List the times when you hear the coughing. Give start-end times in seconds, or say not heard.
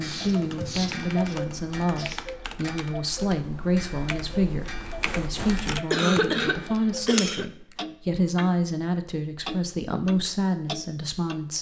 5.9-7.5.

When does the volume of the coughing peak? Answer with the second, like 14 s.
6 s.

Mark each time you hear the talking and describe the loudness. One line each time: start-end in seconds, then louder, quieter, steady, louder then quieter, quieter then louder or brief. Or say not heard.
0.0-11.5 steady.